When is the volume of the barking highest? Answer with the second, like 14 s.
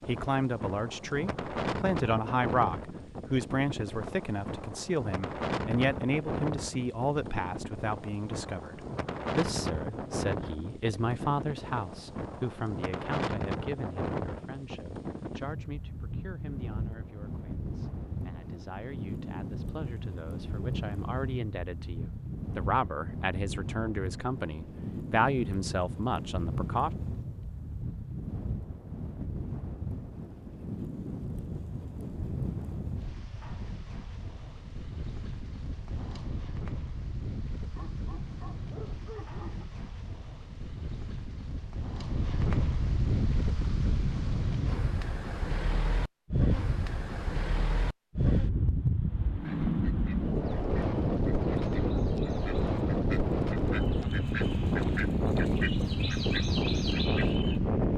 39 s.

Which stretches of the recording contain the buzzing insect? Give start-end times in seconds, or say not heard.
not heard.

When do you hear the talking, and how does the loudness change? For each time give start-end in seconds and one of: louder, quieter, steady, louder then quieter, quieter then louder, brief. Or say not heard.
0.1-26.9 quieter then louder.